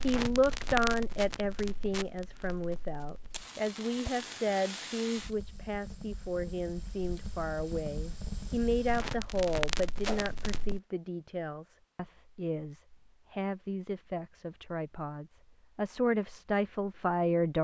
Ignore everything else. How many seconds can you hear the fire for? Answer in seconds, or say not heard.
11 s.